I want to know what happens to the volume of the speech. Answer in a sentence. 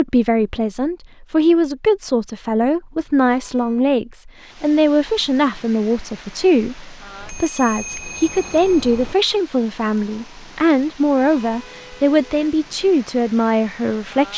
The volume of the speech stays about the same.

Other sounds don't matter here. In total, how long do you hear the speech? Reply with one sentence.
You can hear the speech for 14 seconds altogether.